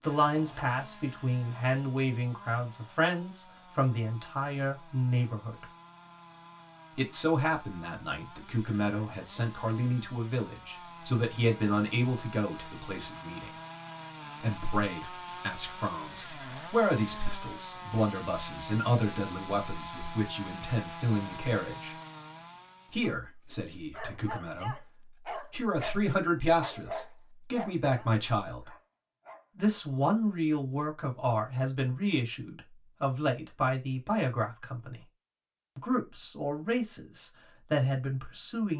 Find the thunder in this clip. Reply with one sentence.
You can't hear the thunder here.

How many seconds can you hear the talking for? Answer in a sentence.
The talking can be heard for 34 seconds in total.